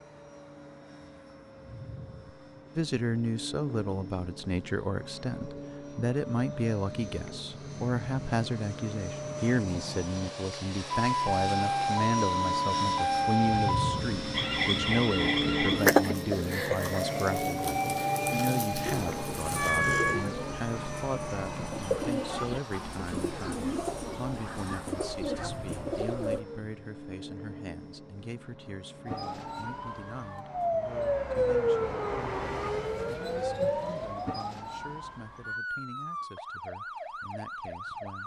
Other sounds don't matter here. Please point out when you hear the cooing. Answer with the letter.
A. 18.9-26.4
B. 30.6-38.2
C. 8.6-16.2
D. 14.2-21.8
A.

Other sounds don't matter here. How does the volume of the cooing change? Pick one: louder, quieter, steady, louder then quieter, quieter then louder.
steady.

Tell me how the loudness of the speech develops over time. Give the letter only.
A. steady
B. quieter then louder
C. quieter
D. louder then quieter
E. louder
C.